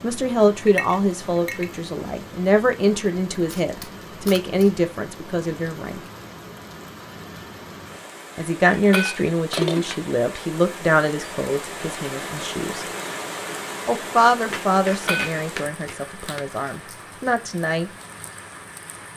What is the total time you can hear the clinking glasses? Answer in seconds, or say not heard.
3 s.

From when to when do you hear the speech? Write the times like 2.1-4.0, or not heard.
0.0-6.0, 8.3-12.8, 13.8-17.9.